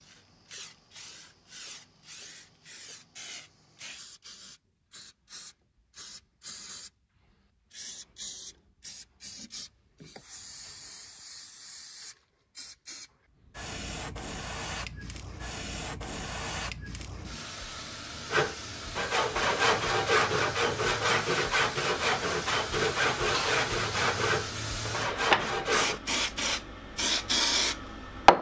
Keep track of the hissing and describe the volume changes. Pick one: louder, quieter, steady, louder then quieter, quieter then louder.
louder.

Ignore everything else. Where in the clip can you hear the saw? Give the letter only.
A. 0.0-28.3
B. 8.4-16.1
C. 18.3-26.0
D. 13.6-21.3
C.